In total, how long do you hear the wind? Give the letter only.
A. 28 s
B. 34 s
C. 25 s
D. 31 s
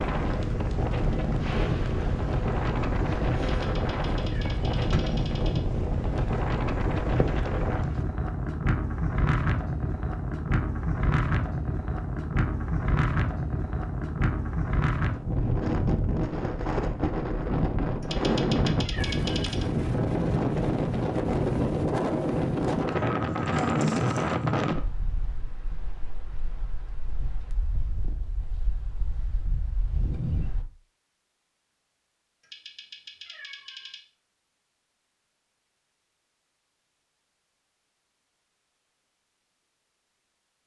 D.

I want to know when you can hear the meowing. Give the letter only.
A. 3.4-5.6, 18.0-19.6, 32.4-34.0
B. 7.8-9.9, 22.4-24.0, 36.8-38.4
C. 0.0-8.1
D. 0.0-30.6
A.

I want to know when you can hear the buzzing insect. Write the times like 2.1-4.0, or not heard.
0.0-8.1.